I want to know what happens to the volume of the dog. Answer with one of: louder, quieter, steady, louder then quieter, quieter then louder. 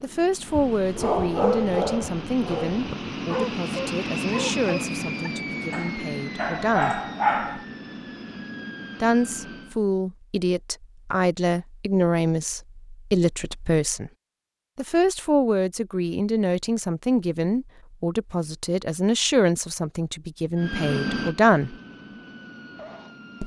quieter then louder.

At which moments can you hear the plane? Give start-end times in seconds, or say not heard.
0.0-9.8, 20.6-23.4.